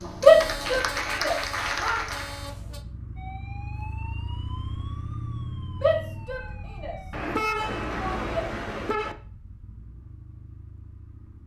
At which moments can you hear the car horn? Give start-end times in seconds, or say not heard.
0.2-2.8, 7.1-9.2.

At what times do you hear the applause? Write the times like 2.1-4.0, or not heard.
0.0-2.5.